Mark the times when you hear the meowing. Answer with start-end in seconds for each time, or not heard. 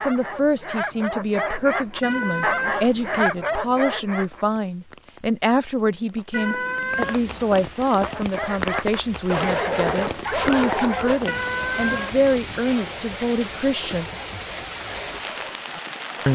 2.0-3.3, 6.3-7.6, 11.2-12.3.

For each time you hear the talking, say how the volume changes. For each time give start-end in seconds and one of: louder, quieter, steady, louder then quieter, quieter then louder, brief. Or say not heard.
0.0-14.1 steady.